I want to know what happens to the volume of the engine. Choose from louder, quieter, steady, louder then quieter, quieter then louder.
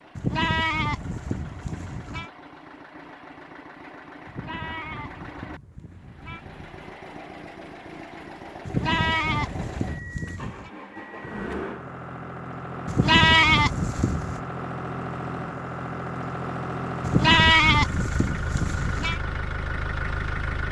louder.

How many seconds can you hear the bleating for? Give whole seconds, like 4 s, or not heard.
10 s.